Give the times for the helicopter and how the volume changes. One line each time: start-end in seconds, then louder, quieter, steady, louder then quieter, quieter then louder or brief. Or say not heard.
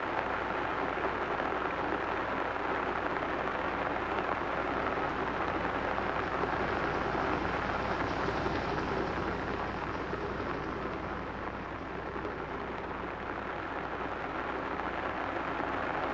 0.0-16.0 louder then quieter.